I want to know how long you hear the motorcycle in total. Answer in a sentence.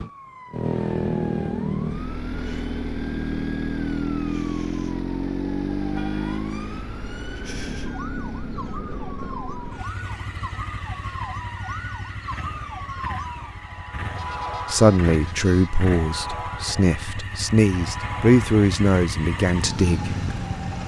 You can hear the motorcycle for 21 seconds altogether.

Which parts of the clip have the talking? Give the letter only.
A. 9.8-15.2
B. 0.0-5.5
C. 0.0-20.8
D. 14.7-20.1
D.